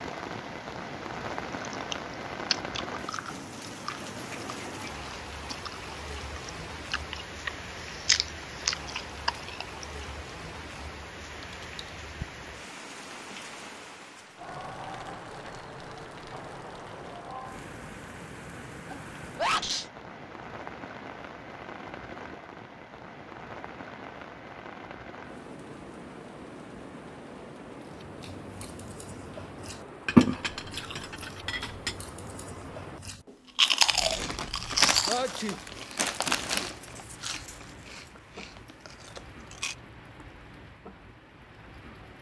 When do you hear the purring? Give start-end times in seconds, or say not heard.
not heard.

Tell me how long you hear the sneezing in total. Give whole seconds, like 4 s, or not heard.
2 s.